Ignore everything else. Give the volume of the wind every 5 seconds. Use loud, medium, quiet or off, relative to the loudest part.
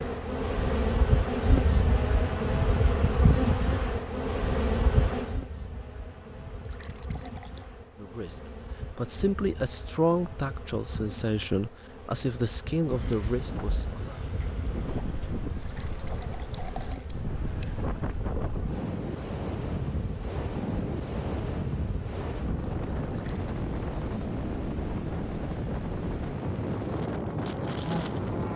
off, off, medium, loud, loud, loud.